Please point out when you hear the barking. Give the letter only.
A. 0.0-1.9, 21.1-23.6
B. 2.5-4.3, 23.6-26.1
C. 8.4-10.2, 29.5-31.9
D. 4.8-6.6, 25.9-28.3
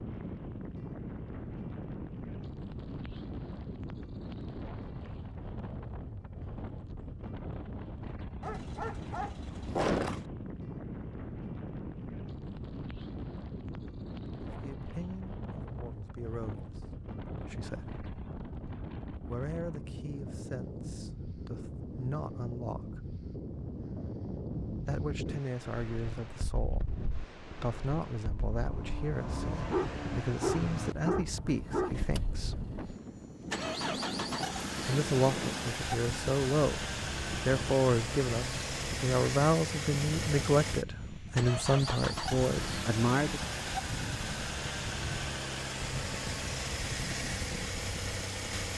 C.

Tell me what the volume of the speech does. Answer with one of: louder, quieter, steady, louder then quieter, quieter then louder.
louder.